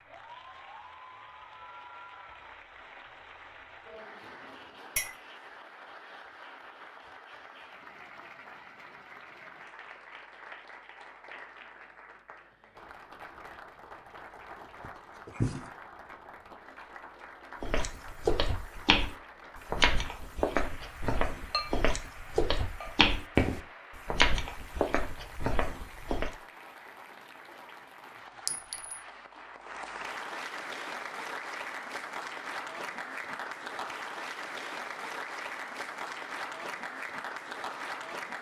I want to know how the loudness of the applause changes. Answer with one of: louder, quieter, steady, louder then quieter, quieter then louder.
louder.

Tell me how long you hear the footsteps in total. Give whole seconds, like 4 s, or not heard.
9 s.